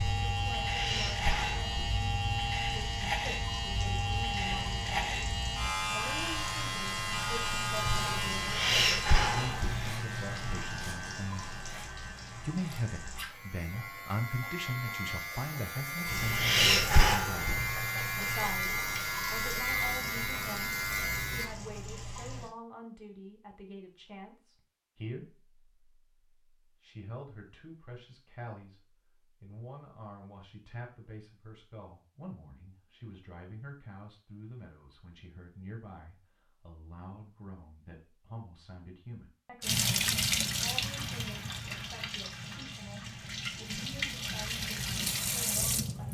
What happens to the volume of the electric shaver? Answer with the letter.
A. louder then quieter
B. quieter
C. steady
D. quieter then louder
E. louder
D.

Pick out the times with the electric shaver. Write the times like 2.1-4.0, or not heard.
0.0-21.5.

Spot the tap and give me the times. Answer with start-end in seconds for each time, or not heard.
0.0-13.3, 16.1-22.5, 39.6-46.0.